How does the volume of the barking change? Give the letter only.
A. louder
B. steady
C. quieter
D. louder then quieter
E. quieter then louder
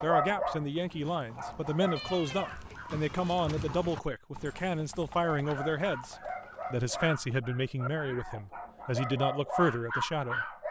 E.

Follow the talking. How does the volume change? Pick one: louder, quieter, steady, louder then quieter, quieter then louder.
steady.